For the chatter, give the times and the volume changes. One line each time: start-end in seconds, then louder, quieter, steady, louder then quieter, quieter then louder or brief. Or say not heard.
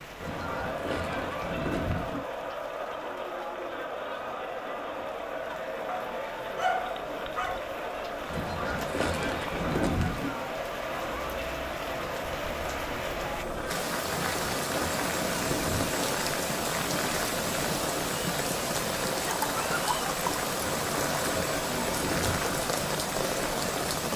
0.0-24.1 steady.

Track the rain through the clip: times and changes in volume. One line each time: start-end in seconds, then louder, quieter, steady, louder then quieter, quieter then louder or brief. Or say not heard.
0.0-24.1 louder.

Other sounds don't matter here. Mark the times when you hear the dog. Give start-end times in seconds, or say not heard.
5.8-7.5.